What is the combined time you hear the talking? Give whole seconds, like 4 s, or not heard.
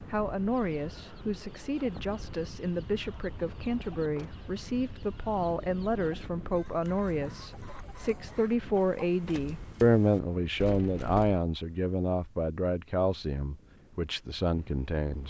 15 s.